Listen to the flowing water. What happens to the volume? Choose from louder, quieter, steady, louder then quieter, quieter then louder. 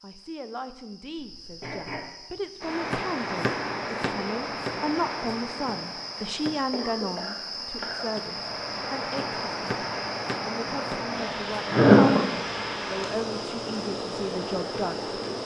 quieter then louder.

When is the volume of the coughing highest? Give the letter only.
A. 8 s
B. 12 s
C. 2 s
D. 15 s
B.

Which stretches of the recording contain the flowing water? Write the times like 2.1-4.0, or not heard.
2.6-15.4.